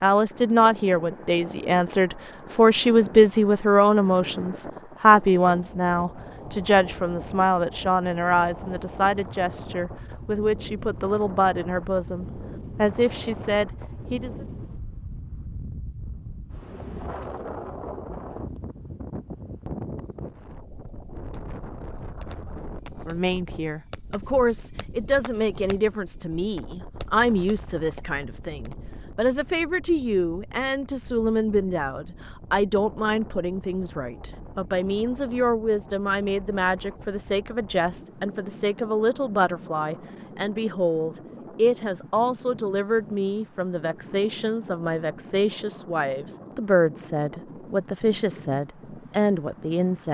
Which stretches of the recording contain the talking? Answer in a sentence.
You can hear the talking from 0.0 to 14.4 s and from 23.1 to 50.0 s.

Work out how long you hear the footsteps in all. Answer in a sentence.
You can't hear the footsteps here.